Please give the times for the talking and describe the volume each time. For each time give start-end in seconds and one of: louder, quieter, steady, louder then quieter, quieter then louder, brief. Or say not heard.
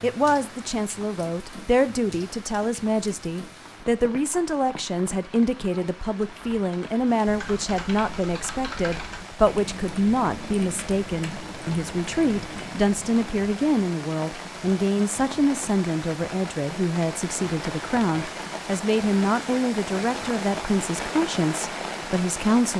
0.0-22.7 steady.